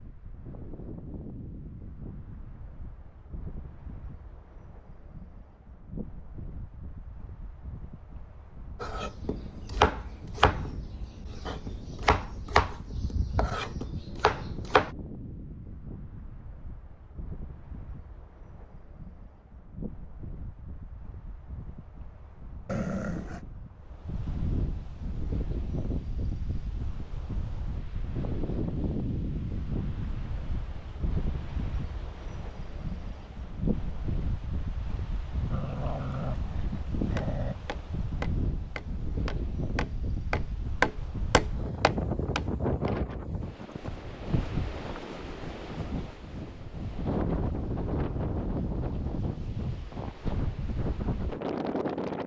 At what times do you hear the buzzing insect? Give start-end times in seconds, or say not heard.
not heard.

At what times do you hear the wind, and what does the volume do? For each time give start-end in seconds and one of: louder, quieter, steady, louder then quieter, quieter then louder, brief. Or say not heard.
0.0-52.2 louder.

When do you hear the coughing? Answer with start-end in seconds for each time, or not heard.
not heard.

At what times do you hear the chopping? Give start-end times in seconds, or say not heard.
8.8-14.9, 37.1-43.0.